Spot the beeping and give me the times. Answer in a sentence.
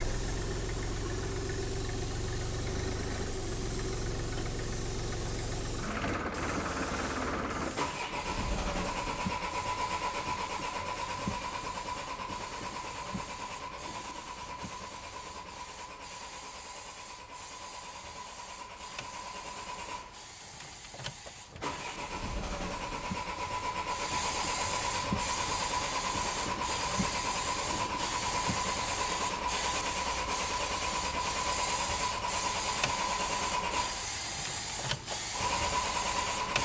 The beeping can't be heard in this clip.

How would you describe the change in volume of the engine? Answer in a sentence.
The loudness of the engine goes down, then up.